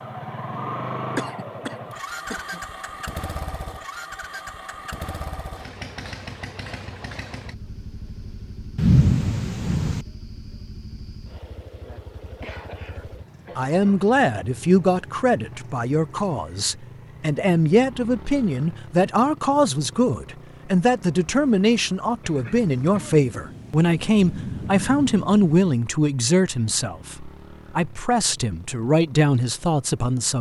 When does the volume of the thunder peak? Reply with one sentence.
The loudest moment of the thunder is at 9 seconds.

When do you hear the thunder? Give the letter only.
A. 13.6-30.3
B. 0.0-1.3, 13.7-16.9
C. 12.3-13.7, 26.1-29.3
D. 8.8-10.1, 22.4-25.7
D.